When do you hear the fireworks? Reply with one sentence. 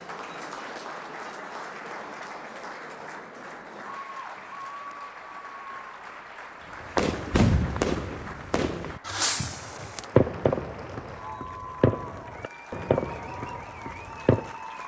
You can hear the fireworks from 6.8 to 14.5 s.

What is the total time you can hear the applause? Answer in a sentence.
The applause can be heard for 15 seconds in total.